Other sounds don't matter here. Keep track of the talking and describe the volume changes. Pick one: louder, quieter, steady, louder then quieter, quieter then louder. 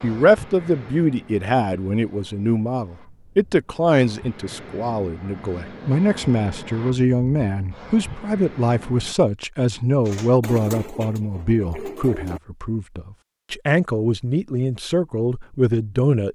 steady.